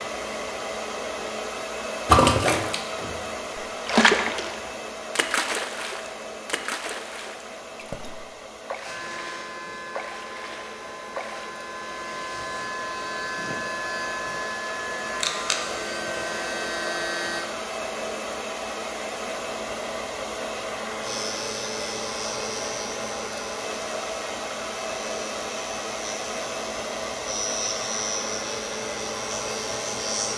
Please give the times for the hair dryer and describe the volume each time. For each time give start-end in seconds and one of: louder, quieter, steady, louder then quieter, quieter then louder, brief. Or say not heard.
0.0-30.3 quieter then louder.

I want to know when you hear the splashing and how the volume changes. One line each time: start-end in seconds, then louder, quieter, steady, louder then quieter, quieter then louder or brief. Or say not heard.
2.0-11.5 quieter.